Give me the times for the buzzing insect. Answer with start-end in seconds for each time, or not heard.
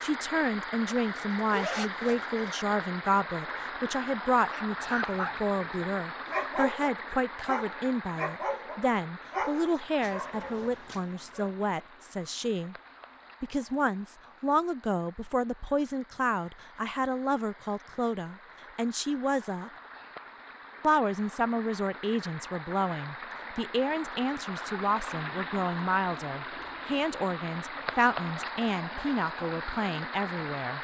not heard.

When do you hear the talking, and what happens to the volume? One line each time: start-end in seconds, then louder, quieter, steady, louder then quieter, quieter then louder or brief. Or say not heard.
0.0-12.8 steady
13.4-19.7 steady
20.8-30.7 steady.